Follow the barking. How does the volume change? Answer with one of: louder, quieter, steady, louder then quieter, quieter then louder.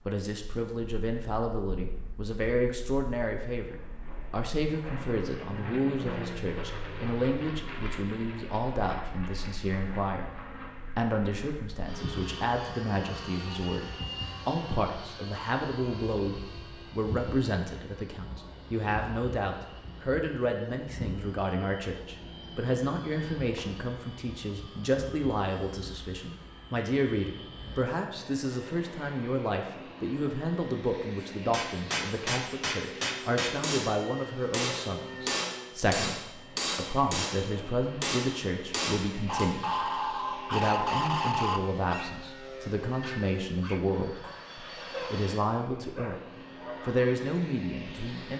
quieter.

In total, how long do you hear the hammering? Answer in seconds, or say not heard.
8 s.